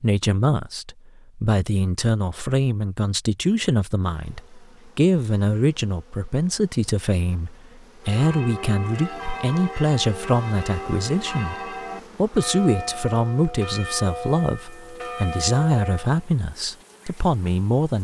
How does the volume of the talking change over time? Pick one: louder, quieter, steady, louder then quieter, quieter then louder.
steady.